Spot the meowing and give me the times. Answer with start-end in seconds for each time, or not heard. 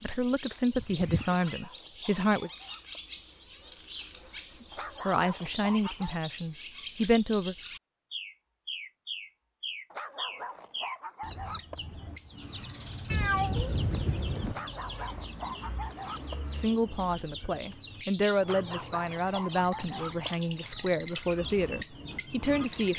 0.8-1.6, 13.1-14.6.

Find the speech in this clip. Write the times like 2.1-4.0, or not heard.
0.0-2.5, 4.6-7.5, 16.5-22.9.